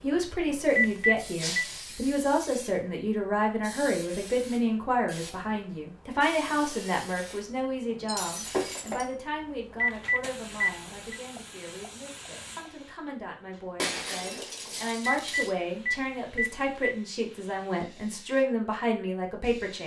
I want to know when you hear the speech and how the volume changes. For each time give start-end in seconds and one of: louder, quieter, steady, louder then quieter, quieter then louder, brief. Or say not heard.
0.0-19.8 quieter then louder.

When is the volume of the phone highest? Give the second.
1 s.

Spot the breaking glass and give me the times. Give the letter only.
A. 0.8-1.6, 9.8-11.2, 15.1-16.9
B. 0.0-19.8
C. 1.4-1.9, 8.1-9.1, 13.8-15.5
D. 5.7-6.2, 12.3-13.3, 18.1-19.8
C.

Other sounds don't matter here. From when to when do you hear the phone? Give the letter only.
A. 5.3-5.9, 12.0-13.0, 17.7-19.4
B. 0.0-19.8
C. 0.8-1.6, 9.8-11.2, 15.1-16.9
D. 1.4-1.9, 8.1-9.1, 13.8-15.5
C.